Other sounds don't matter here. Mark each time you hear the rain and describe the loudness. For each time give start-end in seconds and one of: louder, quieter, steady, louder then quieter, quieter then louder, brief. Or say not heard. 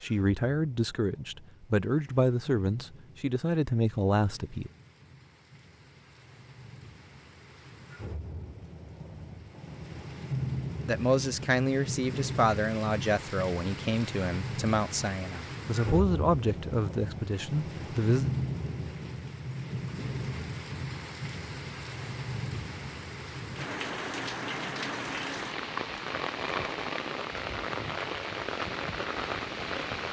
0.0-30.0 louder.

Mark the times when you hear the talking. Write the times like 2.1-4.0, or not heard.
0.0-4.7, 10.8-18.3.